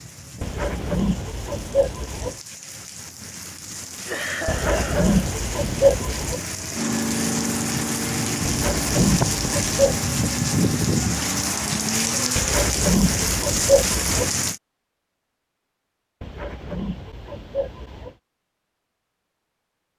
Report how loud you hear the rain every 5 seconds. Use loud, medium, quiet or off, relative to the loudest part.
quiet, loud, loud, off.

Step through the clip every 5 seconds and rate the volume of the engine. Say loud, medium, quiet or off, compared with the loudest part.
off, loud, loud, off.